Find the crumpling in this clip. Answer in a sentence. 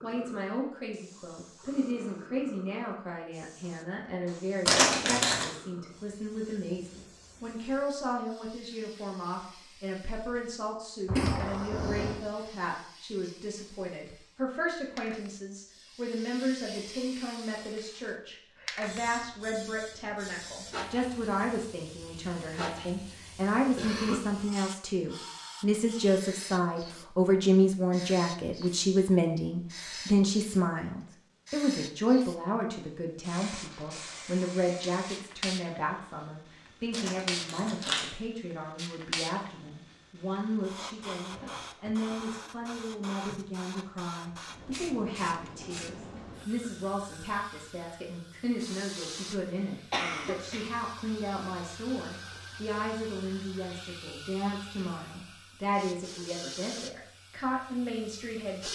You can hear the crumpling from 4.7 to 5.5 s and from 36.9 to 38.1 s.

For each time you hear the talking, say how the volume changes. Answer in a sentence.
You can hear the talking from 0.0 to 58.6 s, getting louder then quieter.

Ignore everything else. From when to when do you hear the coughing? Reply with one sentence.
The coughing can be heard from 11.1 to 12.2 s, from 23.8 to 24.2 s and from 49.9 to 50.7 s.